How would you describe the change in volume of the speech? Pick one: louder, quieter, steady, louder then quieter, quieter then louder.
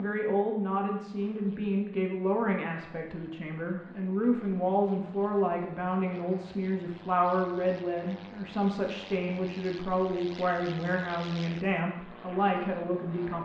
steady.